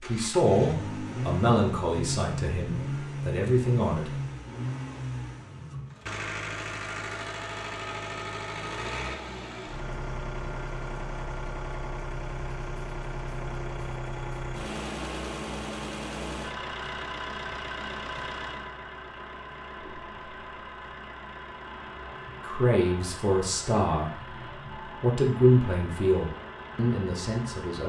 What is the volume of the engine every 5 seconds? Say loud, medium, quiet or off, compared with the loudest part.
loud, loud, loud, loud, medium, medium.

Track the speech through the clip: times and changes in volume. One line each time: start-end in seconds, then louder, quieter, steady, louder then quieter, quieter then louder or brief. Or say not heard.
0.1-4.1 quieter then louder
22.4-24.1 brief
25.0-27.8 brief.